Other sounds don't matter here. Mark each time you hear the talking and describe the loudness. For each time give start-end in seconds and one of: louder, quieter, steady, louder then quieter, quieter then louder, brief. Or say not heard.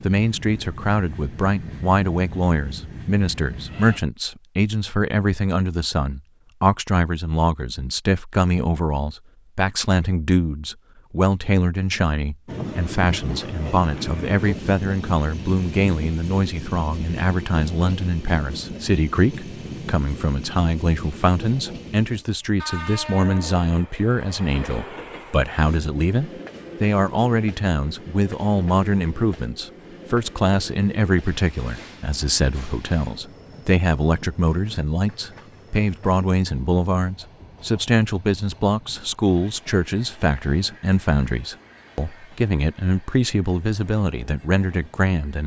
0.0-45.4 steady.